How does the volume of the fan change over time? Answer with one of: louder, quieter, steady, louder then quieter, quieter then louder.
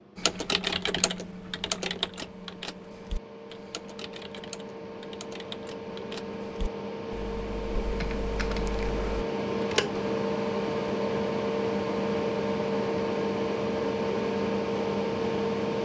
louder.